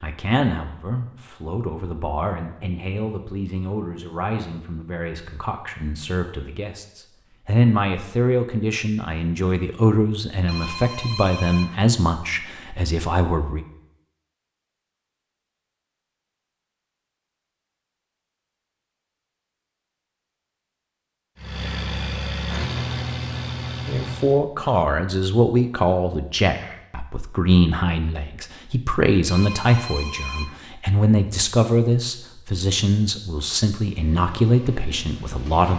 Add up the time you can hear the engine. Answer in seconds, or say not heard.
5 s.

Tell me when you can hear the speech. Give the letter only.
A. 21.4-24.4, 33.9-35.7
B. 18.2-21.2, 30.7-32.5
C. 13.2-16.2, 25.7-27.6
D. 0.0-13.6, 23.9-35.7
D.